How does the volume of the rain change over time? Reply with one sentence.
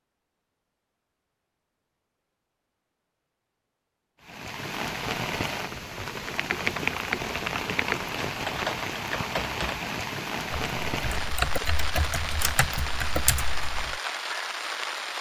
The loudness of the rain stays about the same.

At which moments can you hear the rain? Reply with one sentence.
You can hear the rain from 4.2 to 15.1 s.